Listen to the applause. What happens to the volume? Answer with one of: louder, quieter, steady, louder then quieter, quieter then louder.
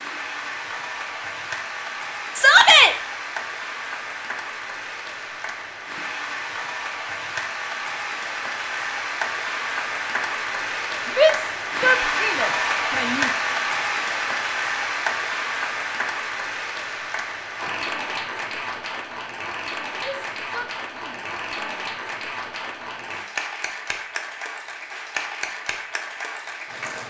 louder then quieter.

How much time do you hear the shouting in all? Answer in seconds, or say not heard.
5 s.